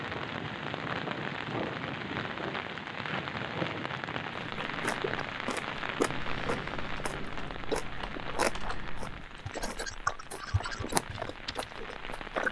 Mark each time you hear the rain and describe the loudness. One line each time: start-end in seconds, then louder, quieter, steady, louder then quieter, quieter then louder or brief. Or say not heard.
0.0-12.4 quieter.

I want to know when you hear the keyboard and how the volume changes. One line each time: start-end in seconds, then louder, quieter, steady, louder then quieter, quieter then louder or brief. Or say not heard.
6.1-11.8 louder then quieter.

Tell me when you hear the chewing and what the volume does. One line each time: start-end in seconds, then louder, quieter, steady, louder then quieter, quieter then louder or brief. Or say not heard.
4.7-12.4 quieter then louder.